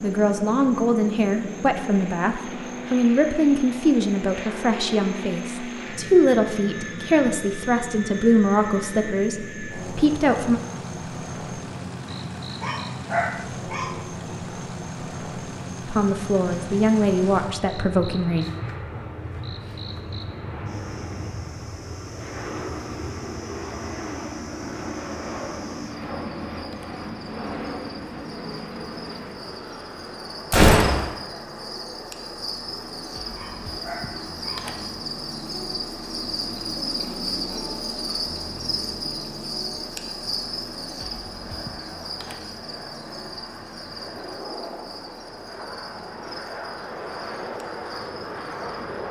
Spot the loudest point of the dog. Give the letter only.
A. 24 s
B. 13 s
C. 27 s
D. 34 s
B.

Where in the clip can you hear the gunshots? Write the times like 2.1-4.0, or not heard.
30.5-31.1.